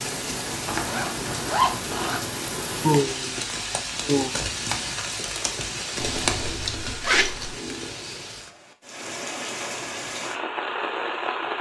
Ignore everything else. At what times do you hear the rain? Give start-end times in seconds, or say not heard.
0.0-11.5.